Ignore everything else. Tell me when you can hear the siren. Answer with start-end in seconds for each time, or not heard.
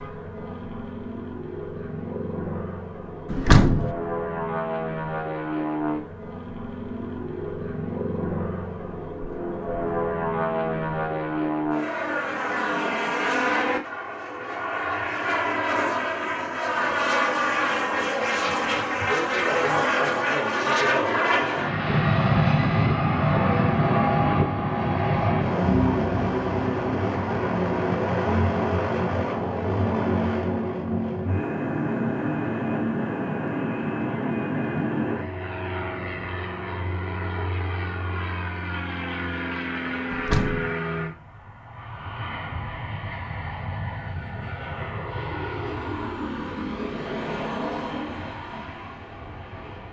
not heard.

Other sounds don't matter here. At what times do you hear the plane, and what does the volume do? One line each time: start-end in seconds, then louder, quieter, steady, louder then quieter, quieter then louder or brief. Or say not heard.
0.0-49.8 louder then quieter.